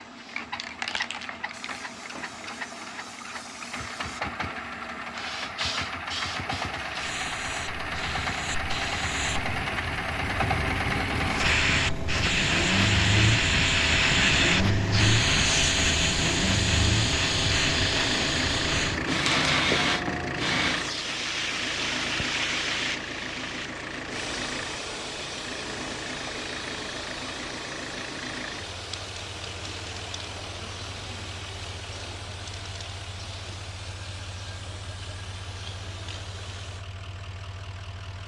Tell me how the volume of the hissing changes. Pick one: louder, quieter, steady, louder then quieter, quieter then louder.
louder then quieter.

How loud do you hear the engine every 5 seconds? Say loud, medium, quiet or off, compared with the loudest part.
medium, loud, loud, loud, medium, medium, quiet, quiet.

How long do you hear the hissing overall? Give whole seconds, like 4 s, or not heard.
37 s.